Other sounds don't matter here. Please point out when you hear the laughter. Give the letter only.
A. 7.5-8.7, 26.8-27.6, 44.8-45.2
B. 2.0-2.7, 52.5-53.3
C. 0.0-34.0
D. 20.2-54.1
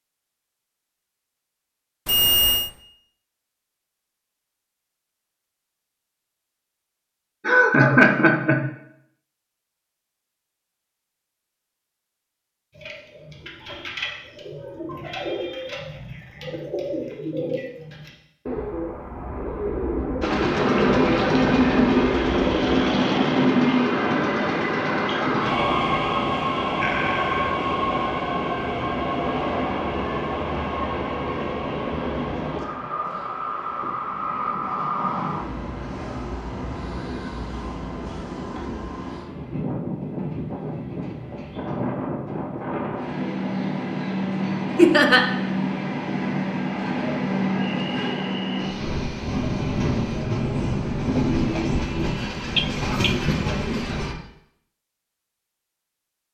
A.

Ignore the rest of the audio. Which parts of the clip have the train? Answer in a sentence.
You can hear the train from 20.2 to 54.1 s.